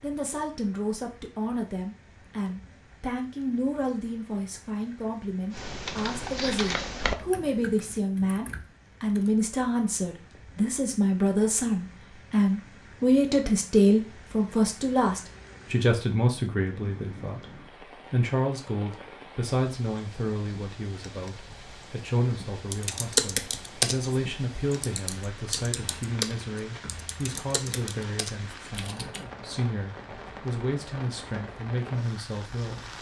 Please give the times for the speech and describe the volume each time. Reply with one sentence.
You can hear the speech from 0.0 to 32.9 s, getting louder then quieter.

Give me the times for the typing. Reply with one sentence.
You can hear the typing from 5.5 to 9.3 s and from 22.7 to 29.2 s.